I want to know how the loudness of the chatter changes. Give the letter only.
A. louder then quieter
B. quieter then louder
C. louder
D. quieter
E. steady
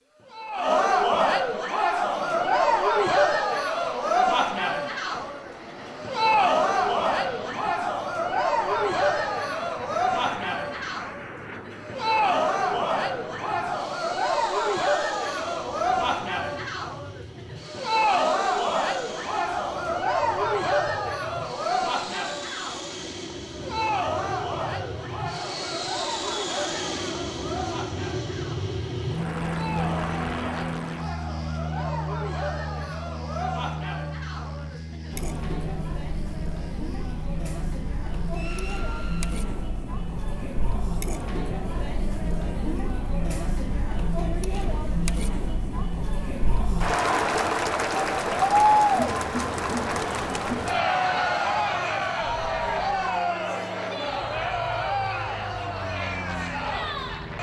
B.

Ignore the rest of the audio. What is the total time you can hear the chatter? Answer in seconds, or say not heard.
57 s.